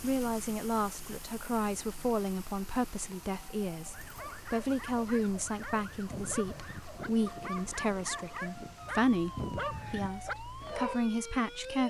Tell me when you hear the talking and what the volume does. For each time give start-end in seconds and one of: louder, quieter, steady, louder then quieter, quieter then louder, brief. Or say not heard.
0.0-11.8 steady.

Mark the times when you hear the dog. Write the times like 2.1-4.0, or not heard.
4.0-11.0.